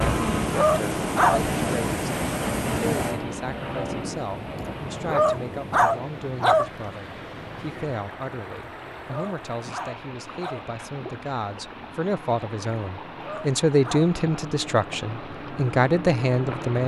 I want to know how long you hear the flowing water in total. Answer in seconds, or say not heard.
17 s.